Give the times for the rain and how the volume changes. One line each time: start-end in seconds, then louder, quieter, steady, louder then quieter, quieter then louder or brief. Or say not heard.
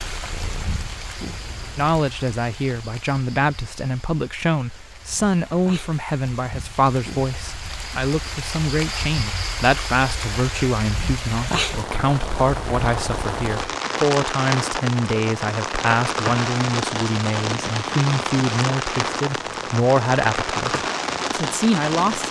0.0-22.2 louder.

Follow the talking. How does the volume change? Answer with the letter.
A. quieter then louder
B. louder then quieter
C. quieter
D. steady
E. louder
D.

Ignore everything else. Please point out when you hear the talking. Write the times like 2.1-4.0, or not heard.
1.8-22.2.